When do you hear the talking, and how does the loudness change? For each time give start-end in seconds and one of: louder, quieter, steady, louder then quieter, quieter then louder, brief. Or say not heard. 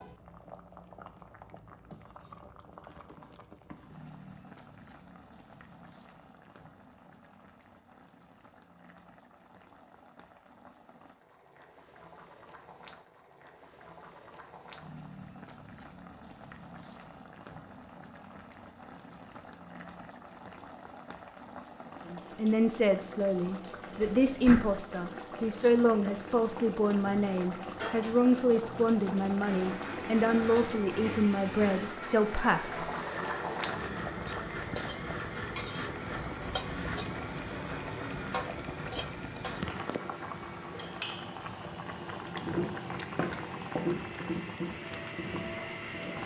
22.1-32.8 steady.